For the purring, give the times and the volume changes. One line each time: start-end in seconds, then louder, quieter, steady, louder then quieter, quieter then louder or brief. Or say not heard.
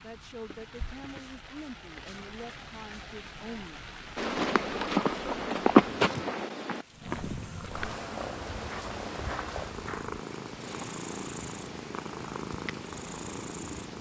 6.8-13.9 steady.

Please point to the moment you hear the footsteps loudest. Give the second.
6 s.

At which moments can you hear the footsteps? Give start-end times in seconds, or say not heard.
4.2-10.8.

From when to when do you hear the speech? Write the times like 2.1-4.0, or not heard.
0.0-3.9.